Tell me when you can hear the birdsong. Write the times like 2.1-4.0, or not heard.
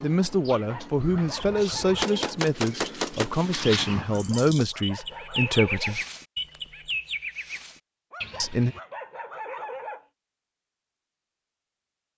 0.0-8.8.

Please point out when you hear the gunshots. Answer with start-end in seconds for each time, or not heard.
1.2-4.5.